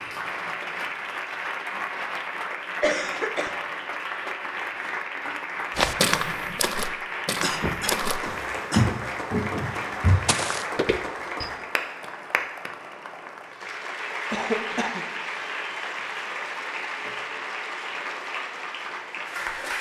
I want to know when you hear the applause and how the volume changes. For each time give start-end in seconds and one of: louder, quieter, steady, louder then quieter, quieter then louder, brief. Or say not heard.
0.0-19.7 steady.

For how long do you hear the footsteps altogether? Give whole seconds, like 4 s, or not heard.
6 s.